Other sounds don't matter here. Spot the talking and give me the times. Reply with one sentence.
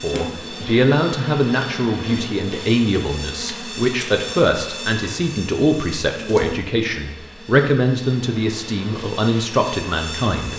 The talking can be heard from 0.0 to 10.5 s.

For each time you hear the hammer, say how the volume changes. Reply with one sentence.
You can't hear the hammer here.